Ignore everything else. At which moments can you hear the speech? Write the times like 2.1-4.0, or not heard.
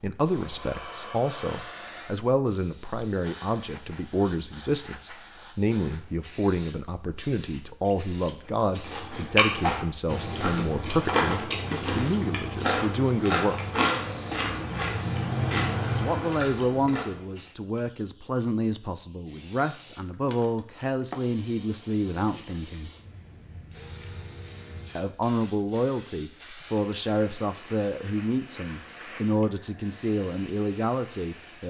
0.0-13.6, 15.9-22.9, 24.9-31.6.